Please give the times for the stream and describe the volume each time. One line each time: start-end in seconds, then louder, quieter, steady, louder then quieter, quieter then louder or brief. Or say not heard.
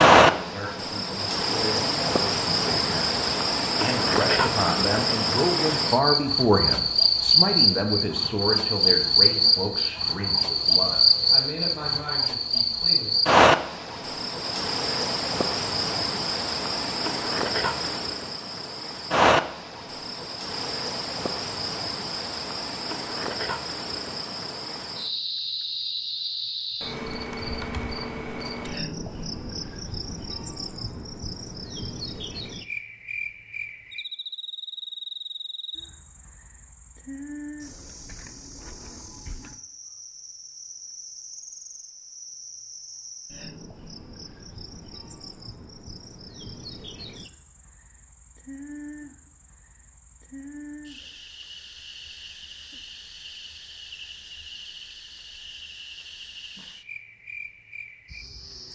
not heard.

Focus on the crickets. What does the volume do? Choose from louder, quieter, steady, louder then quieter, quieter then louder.
quieter.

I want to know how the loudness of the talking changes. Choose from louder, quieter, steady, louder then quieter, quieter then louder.
louder then quieter.